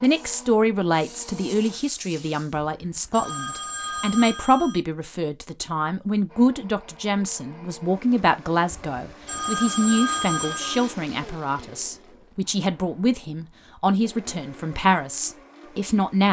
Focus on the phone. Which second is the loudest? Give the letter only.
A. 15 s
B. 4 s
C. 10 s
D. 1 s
C.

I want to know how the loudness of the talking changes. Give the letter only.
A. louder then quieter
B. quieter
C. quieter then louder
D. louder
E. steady
E.